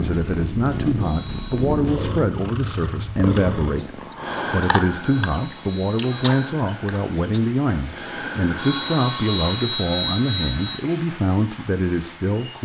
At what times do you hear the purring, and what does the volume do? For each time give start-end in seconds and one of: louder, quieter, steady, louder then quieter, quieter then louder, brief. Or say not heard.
0.0-9.2 quieter then louder.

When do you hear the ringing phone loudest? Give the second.
10 s.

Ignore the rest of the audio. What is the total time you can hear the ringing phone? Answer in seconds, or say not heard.
4 s.